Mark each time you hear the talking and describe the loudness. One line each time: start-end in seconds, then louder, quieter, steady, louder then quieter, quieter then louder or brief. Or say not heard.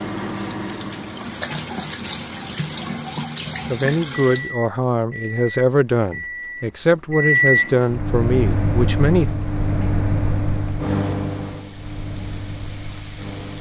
3.7-9.2 steady.